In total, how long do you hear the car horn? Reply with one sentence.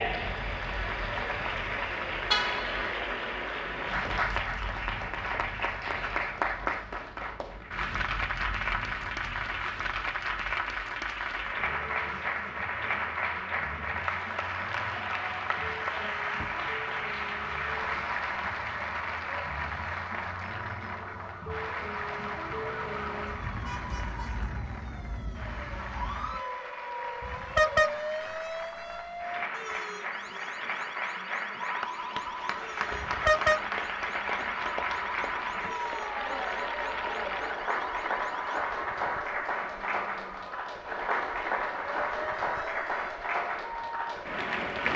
You can hear the car horn for 2 seconds altogether.